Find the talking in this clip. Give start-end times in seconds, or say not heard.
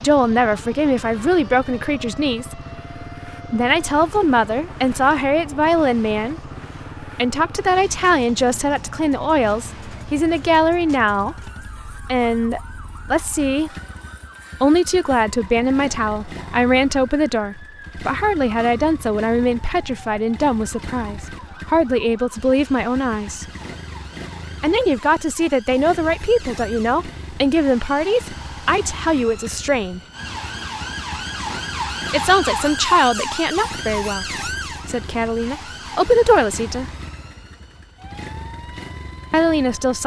0.0-2.6, 3.5-13.7, 14.6-23.4, 24.6-30.0, 32.1-36.9, 39.3-40.0.